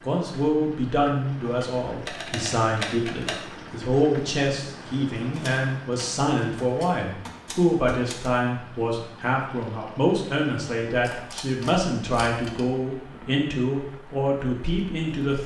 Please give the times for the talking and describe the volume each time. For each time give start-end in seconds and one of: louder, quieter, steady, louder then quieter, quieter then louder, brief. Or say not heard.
0.0-15.4 steady.